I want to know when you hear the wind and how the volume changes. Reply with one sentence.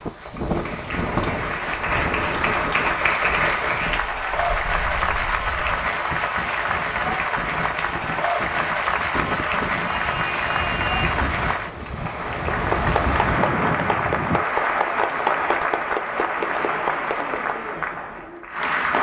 You can hear the wind from 0.0 to 14.4 s, getting quieter then louder.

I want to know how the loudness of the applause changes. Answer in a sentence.
The loudness of the applause stays about the same.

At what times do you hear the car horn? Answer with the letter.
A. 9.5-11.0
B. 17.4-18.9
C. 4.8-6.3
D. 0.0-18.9
A.